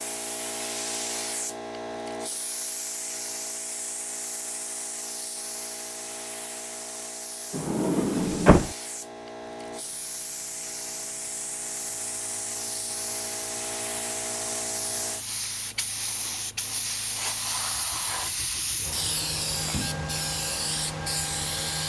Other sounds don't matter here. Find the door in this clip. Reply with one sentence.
The door can be heard from 7.5 to 8.7 s.